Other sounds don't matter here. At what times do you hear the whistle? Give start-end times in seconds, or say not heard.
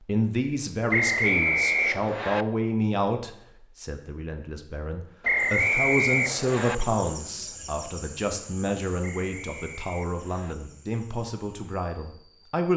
0.9-2.5, 5.2-6.8, 9.0-10.6.